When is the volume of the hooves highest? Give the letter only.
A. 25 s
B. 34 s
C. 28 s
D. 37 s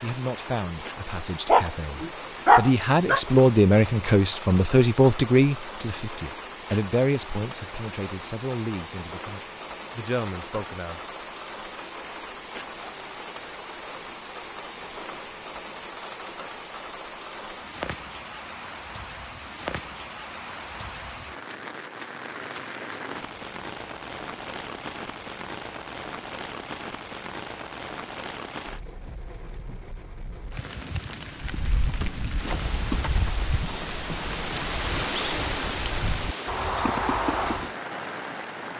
D.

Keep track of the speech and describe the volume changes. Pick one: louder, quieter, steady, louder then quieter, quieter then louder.
louder then quieter.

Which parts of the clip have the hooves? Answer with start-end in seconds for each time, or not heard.
31.4-37.7.